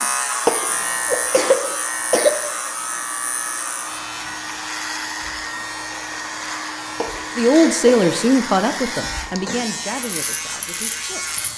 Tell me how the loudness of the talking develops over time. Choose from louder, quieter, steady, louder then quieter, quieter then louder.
quieter.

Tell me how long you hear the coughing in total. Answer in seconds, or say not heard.
3 s.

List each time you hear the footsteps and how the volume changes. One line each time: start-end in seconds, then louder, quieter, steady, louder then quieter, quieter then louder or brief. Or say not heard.
not heard.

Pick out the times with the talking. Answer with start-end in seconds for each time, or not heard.
7.3-11.4.